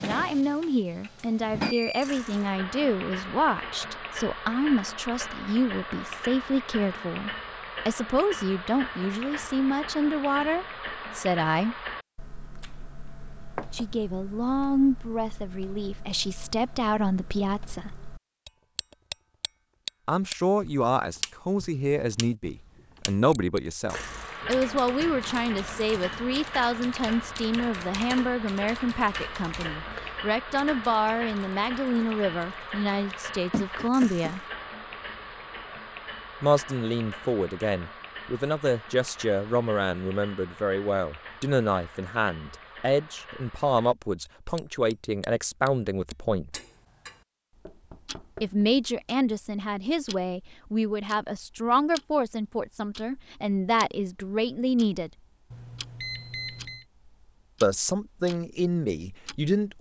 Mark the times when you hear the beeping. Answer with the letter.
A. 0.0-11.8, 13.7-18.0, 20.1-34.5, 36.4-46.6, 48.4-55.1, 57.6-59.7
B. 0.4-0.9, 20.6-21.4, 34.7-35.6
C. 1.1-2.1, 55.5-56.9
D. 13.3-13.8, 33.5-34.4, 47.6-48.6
C.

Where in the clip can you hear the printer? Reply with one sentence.
You can't hear the printer here.